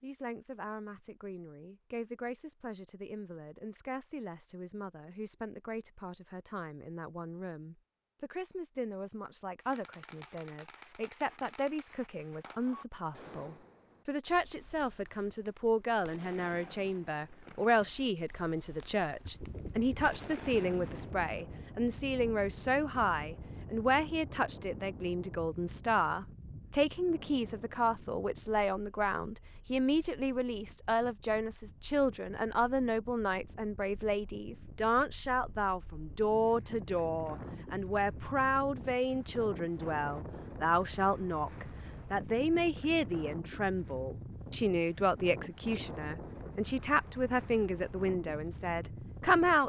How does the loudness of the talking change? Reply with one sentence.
The loudness of the talking goes up.